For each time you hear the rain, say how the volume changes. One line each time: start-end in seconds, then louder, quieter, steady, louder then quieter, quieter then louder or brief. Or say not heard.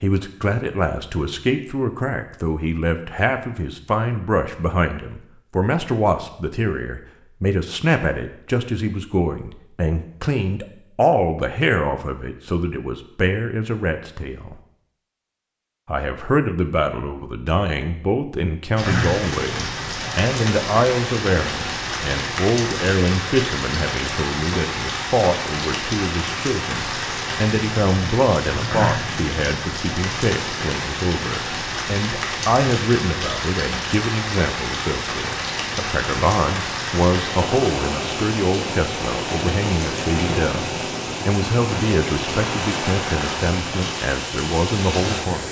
18.8-45.4 steady.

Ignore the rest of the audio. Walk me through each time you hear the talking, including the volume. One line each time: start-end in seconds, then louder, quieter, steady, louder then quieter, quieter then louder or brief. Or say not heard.
0.0-14.6 steady
15.8-45.4 steady.